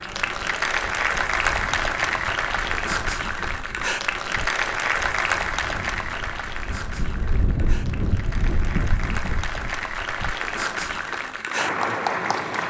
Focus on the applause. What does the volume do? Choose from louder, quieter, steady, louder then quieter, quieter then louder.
quieter then louder.